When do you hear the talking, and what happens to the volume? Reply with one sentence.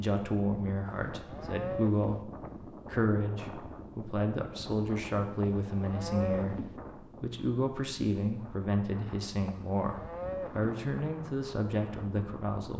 You can hear the talking from 0.0 to 12.7 s, at a steady volume.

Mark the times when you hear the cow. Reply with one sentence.
The cow can be heard from 0.8 to 2.2 s, from 5.4 to 6.8 s and from 9.4 to 10.7 s.